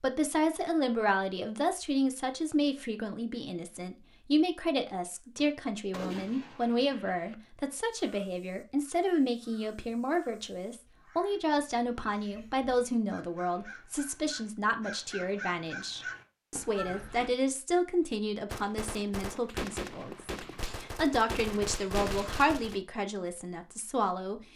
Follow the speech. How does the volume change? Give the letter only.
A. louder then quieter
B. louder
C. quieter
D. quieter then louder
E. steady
E.